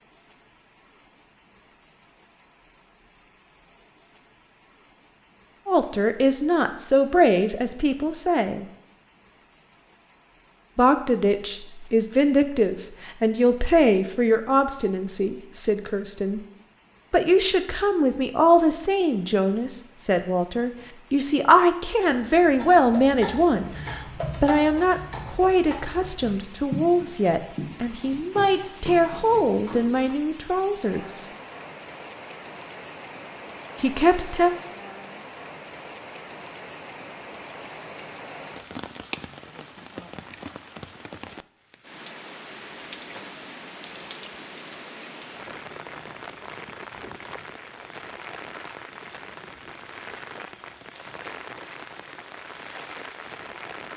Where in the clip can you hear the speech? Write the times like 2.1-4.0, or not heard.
5.7-8.7, 10.8-16.4, 17.1-31.2, 33.8-34.5.